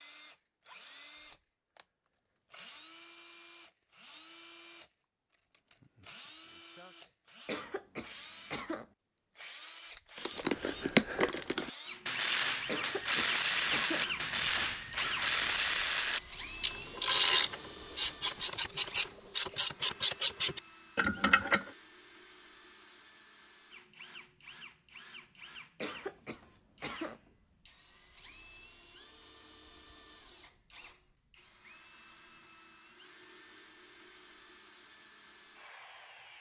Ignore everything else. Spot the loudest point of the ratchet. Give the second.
17 s.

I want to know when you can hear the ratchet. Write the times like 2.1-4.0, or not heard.
10.2-21.6.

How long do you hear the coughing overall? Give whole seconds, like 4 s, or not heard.
4 s.